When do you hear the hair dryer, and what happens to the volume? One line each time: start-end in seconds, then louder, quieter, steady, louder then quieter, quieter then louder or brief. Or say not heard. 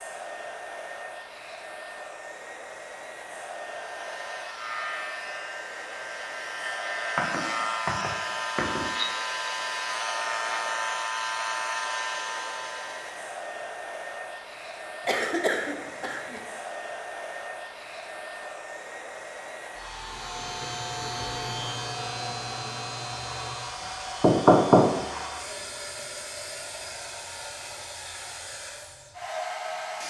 0.0-30.0 steady.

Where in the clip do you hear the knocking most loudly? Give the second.
25 s.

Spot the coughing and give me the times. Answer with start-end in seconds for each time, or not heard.
15.0-16.4.